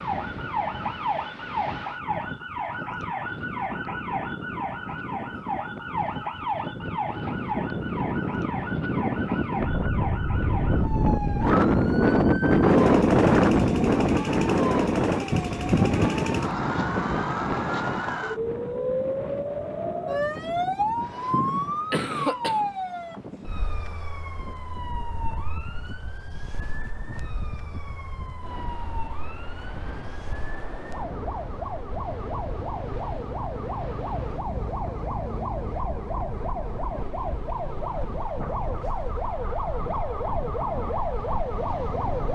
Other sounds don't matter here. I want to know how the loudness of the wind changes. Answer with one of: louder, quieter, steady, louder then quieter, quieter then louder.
louder then quieter.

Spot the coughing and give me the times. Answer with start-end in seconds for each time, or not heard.
20.9-22.6.